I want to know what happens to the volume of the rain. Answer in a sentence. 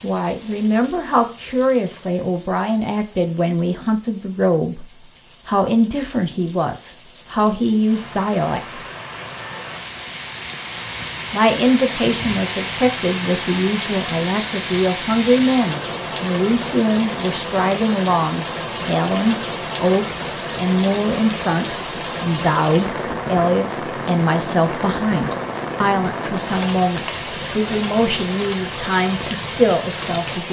The loudness of the rain goes up.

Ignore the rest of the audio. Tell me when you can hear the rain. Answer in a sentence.
You can hear the rain from 0.0 to 30.4 s.